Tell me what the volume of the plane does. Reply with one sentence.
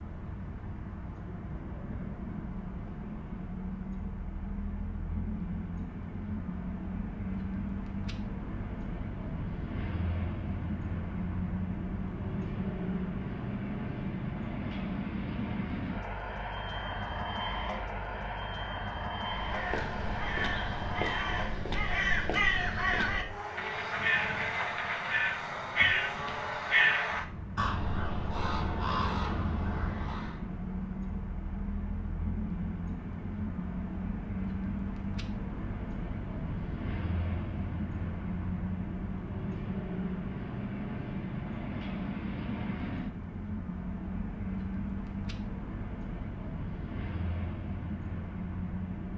The volume of the plane stays about the same.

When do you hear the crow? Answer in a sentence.
You can hear the crow from 19.2 to 30.4 s.